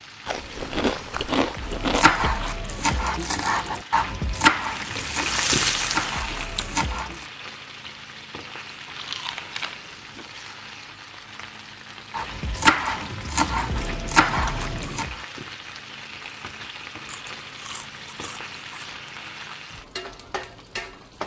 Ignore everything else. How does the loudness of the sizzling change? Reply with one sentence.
The loudness of the sizzling goes up, then down.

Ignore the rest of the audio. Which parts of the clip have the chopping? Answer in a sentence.
The chopping can be heard from 1.4 to 7.2 s and from 12.2 to 15.2 s.